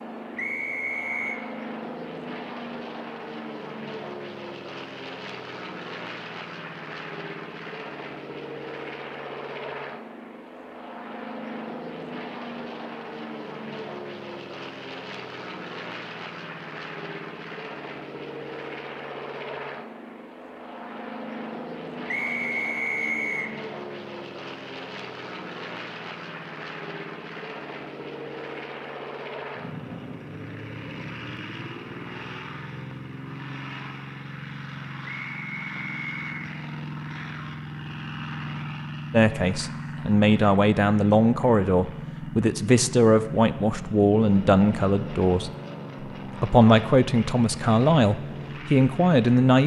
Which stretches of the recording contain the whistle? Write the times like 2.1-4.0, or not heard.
0.3-1.4, 22.1-23.6, 35.2-36.4.